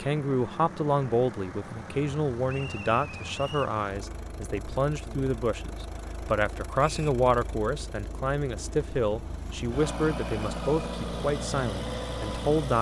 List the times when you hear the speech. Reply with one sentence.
You can hear the speech from 0.0 to 12.7 s.